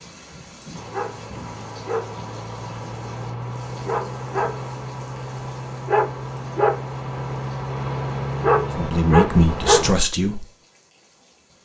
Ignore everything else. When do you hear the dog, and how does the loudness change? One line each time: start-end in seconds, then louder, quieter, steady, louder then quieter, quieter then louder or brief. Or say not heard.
0.8-9.9 louder.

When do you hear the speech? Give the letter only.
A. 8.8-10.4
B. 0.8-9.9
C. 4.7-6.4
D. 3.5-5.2
A.